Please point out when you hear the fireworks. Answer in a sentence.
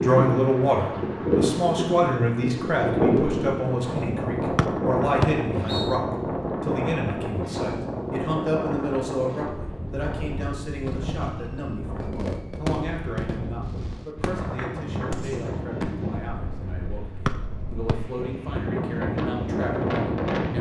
The fireworks can be heard from 10.7 to 16.1 s.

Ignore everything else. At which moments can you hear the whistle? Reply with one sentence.
You can hear the whistle from 4.5 to 6.0 s and from 17.2 to 17.9 s.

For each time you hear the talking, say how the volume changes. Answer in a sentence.
You can hear the talking from 0.0 to 20.5 s, getting quieter.